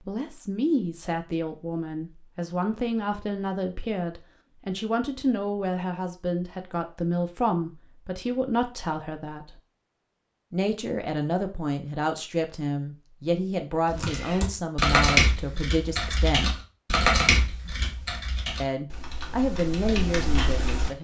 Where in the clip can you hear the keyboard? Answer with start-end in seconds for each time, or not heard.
13.9-20.9.